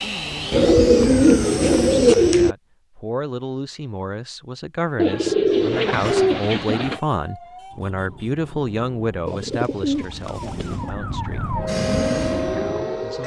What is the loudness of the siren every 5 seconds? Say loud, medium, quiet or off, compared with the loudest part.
off, quiet, loud.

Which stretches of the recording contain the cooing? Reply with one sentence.
The cooing can be heard from 0.5 to 2.5 s, from 5.0 to 7.0 s and from 9.2 to 10.9 s.